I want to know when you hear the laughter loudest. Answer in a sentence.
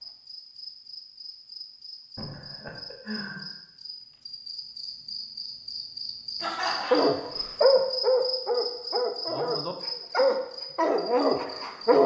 The loudest moment of the laughter is at 7 seconds.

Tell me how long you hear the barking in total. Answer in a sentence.
The barking can be heard for 5 seconds in total.